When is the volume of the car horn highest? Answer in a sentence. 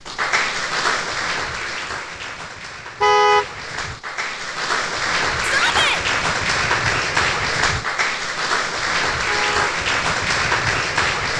The loudest moment of the car horn is at 3 seconds.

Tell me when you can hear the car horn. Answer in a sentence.
You can hear the car horn from 3.0 to 3.5 s and from 9.2 to 9.7 s.